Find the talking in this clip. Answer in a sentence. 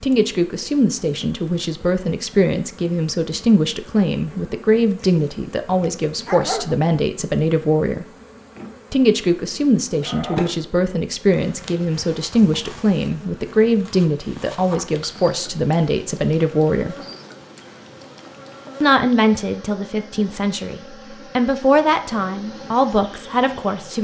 The talking can be heard from 0.0 to 8.1 s, from 8.9 to 16.9 s and from 18.8 to 23.9 s.